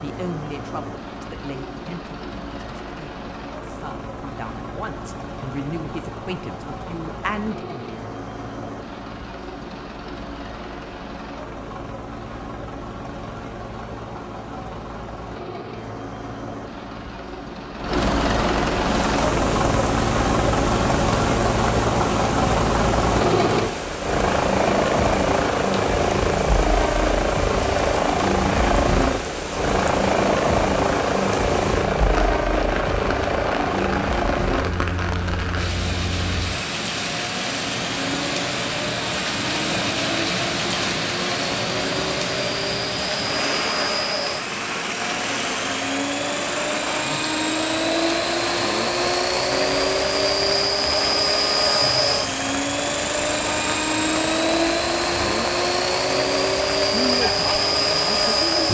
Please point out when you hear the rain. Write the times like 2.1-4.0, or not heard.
18.9-58.6.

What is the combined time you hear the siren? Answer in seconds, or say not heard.
not heard.